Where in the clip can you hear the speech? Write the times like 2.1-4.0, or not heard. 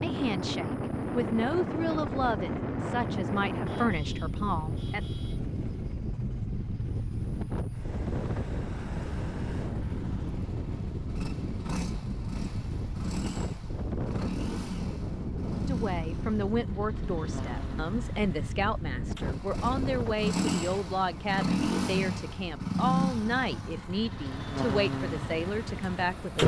0.0-5.0, 15.7-26.4.